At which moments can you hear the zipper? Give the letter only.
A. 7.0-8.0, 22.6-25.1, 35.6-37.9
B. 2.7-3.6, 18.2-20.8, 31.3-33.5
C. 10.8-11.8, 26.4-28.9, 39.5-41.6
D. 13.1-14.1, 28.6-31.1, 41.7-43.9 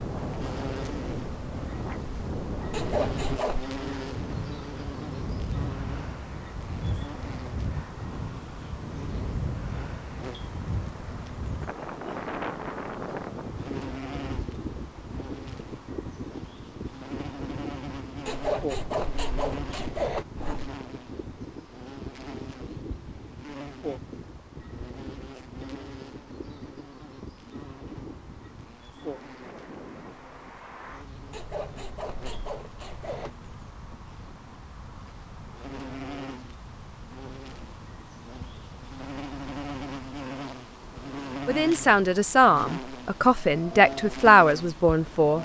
B.